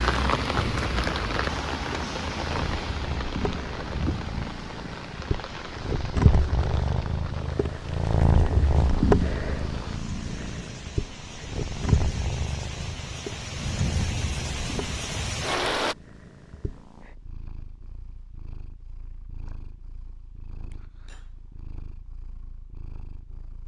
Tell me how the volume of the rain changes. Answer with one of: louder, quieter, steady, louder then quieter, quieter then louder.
quieter then louder.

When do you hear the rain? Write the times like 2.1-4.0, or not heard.
0.0-15.9.